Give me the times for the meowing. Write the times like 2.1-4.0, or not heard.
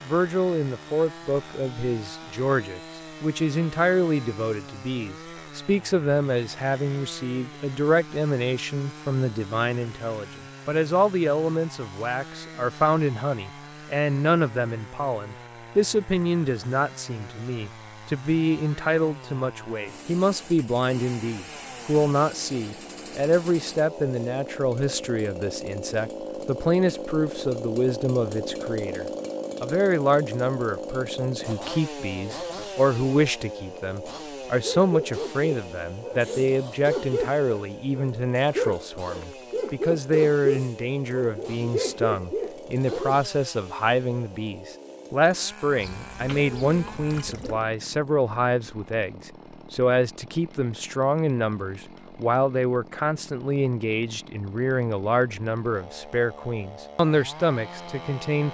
not heard.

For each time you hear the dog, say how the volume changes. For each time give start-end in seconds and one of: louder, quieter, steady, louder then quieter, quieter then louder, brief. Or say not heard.
34.1-43.2 steady.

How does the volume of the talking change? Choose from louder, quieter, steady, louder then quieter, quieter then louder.
steady.